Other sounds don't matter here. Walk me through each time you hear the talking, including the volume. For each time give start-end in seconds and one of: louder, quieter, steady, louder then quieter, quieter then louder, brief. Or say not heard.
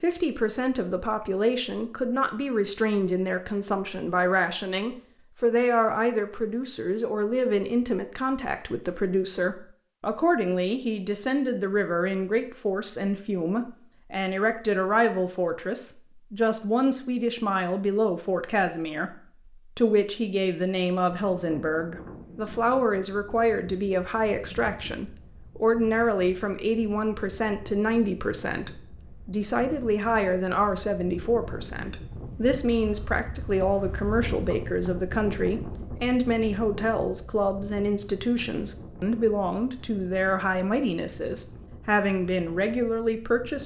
0.0-43.6 steady.